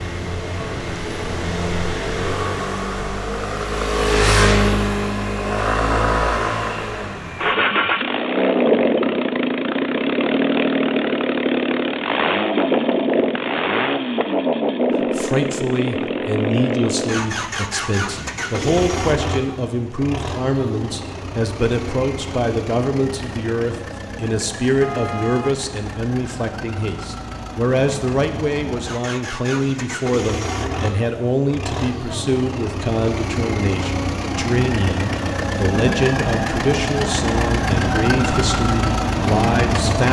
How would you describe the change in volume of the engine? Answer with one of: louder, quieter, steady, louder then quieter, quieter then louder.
quieter then louder.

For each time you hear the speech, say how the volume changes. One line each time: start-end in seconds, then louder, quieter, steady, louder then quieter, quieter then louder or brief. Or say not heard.
15.0-40.0 steady.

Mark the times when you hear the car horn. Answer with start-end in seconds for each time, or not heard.
24.8-25.6.